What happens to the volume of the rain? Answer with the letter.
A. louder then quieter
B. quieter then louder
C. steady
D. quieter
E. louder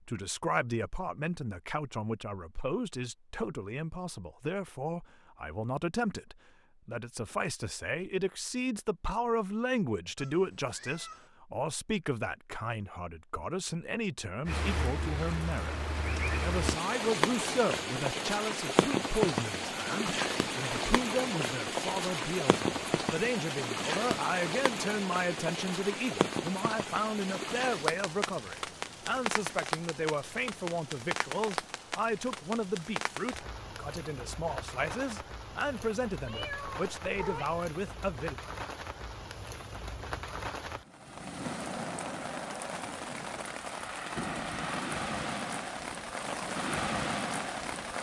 B.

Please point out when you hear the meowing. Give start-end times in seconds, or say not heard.
10.2-11.3, 36.2-37.6.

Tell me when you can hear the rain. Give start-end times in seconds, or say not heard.
14.4-47.9.